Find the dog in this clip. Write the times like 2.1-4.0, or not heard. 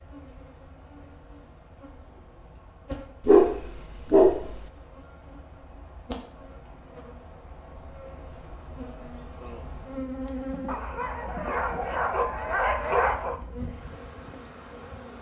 3.2-4.7, 10.7-13.4.